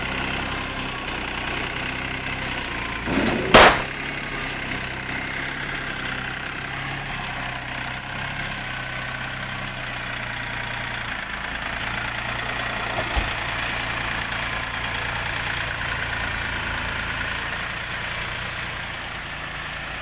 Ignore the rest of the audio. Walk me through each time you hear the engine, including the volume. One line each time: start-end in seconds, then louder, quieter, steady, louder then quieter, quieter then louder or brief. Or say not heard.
0.0-19.9 steady.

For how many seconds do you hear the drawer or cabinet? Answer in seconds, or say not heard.
2 s.